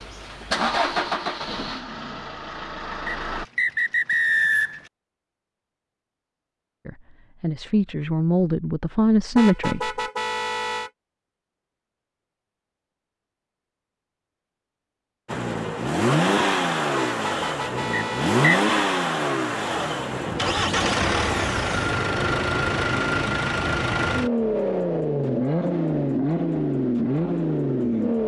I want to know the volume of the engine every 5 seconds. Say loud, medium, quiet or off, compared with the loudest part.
medium, off, off, loud, loud, loud.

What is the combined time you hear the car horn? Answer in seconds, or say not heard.
3 s.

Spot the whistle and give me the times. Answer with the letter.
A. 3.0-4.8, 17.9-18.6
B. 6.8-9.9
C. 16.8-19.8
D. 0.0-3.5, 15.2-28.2
A.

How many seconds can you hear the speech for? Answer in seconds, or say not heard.
3 s.